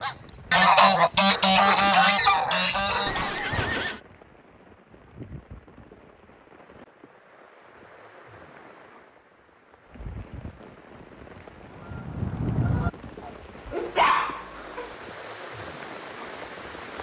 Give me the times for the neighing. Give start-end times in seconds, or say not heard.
3.0-4.0.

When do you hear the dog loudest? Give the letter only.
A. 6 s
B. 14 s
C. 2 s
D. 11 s
B.